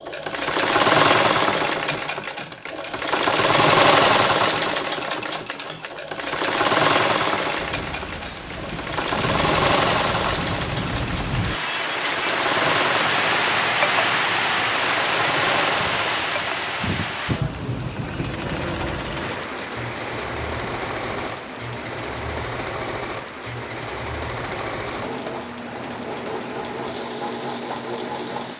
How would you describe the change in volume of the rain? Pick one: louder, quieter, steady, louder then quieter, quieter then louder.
louder then quieter.